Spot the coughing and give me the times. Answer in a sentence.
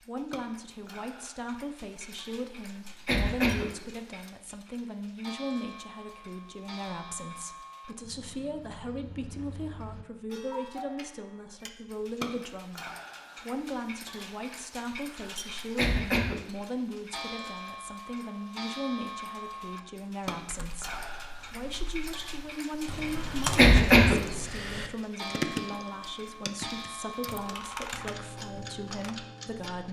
You can hear the coughing from 2.9 to 3.9 s, from 15.6 to 16.6 s and from 23.4 to 24.4 s.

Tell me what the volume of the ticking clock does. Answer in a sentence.
The loudness of the ticking clock goes up.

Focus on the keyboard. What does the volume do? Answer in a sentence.
The volume of the keyboard goes up, then down.